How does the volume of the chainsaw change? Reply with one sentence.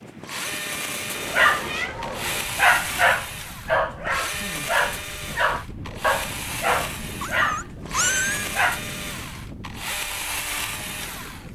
The loudness of the chainsaw stays about the same.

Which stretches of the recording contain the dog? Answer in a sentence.
The dog can be heard from 1.3 to 8.8 s.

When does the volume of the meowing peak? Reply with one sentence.
The loudest moment of the meowing is at 8 seconds.